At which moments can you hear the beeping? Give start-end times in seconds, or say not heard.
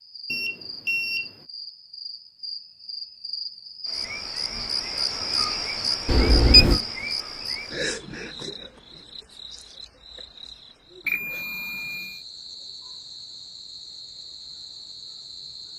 0.3-1.3, 6.0-6.8, 11.1-12.2.